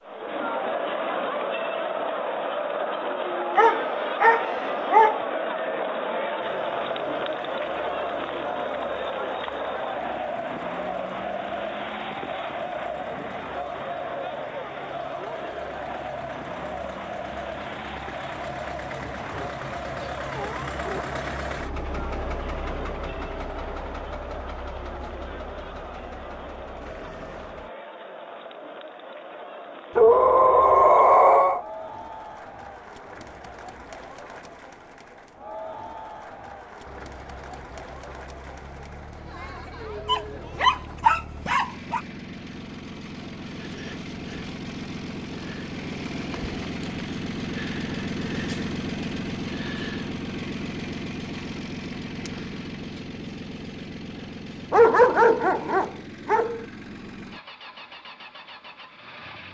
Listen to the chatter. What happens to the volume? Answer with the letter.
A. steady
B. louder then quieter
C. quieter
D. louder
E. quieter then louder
C.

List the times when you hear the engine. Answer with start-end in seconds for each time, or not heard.
6.4-27.7, 36.9-59.4.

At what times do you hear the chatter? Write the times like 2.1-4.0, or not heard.
0.0-41.0.